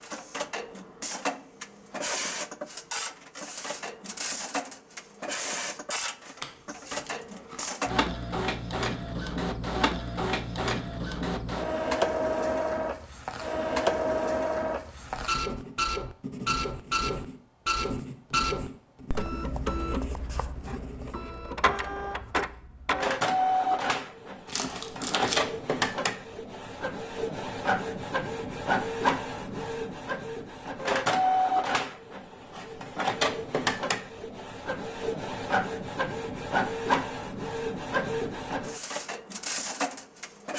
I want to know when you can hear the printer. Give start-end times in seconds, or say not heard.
0.0-40.5.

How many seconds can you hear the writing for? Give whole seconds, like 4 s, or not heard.
6 s.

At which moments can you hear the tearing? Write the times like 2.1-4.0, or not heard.
6.4-7.8, 24.4-25.4.